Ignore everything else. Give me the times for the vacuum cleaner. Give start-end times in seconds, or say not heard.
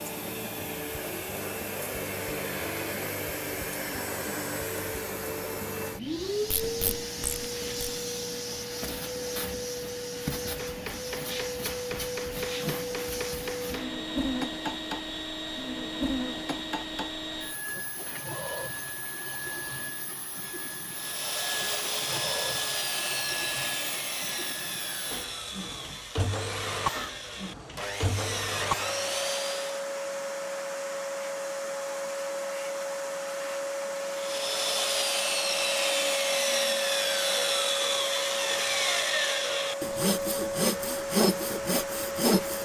0.0-42.6.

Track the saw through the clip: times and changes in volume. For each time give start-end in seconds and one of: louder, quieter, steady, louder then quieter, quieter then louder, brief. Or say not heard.
20.9-29.9 quieter then louder
34.1-42.6 steady.